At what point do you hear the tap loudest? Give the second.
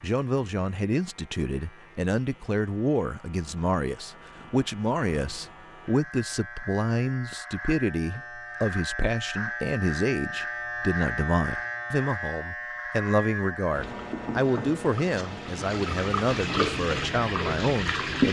18 s.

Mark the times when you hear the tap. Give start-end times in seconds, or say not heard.
13.7-18.2.